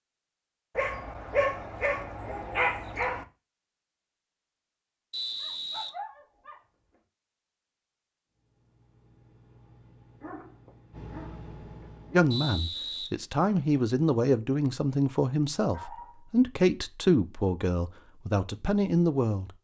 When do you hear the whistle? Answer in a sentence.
The whistle can be heard from 5.1 to 5.9 s and from 12.3 to 13.8 s.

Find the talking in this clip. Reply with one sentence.
The talking can be heard from 12.1 to 19.5 s.